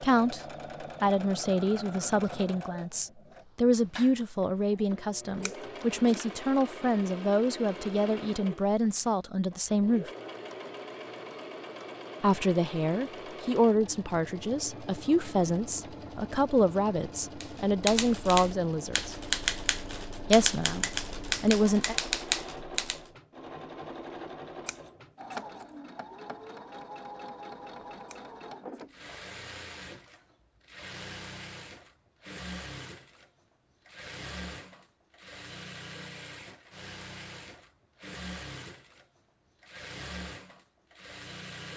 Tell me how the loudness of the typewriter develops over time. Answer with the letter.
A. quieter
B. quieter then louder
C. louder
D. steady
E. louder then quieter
D.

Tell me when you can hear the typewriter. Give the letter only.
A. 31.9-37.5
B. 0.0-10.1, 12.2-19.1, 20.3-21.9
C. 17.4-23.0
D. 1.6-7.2
C.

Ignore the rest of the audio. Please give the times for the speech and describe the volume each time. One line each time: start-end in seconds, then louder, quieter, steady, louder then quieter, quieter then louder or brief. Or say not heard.
0.0-10.1 steady
12.2-19.1 quieter then louder
20.3-21.9 brief.